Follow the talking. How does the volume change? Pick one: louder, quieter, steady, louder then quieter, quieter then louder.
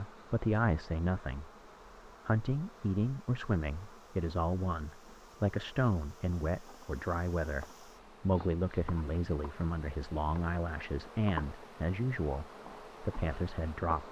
steady.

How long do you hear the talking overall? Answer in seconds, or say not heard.
14 s.